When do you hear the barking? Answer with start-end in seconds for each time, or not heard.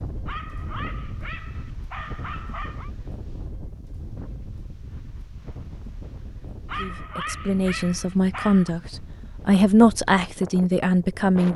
0.2-2.9, 6.7-8.8.